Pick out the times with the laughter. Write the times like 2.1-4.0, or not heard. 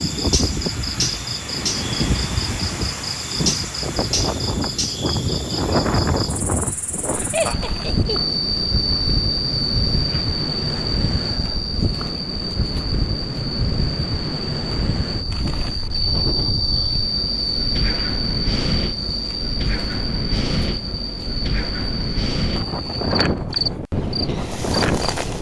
7.3-8.4.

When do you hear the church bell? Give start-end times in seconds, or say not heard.
not heard.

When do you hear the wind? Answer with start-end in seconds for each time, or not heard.
0.0-25.3.